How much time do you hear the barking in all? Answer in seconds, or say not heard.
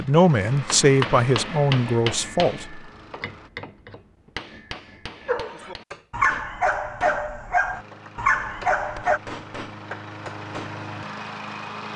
4 s.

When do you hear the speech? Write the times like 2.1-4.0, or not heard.
0.0-2.8.